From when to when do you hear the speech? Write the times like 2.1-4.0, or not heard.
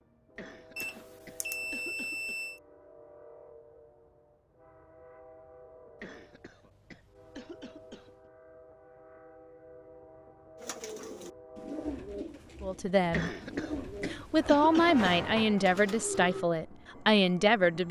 12.6-13.3, 14.1-17.8.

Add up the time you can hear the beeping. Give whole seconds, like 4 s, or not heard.
2 s.